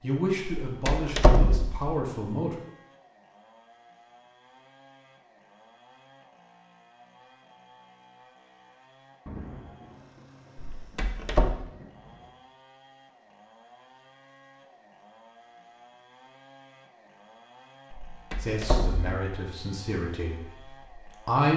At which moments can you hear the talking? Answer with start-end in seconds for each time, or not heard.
0.0-2.5, 18.4-21.5.